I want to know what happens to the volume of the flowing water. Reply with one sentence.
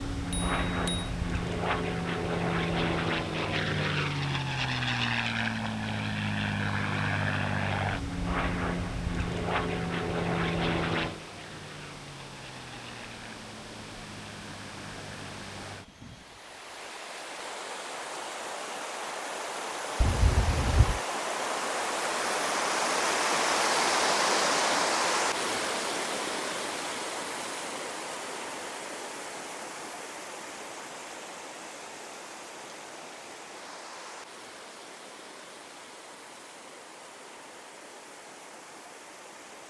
The loudness of the flowing water goes up, then down.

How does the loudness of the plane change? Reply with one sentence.
The loudness of the plane goes down.